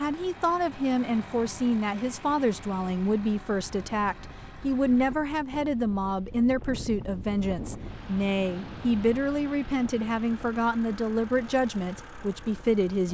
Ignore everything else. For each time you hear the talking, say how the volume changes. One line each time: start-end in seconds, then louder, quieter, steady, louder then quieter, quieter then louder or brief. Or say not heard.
0.0-13.1 steady.